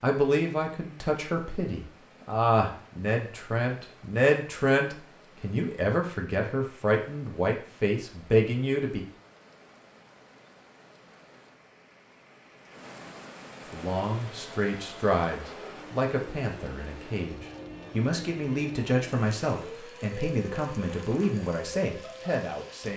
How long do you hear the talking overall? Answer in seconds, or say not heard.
18 s.